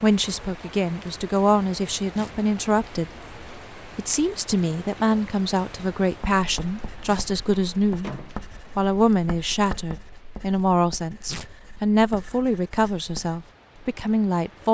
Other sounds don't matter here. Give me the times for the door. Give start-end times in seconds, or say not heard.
8.0-8.8.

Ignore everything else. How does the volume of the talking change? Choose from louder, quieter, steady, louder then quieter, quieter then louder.
steady.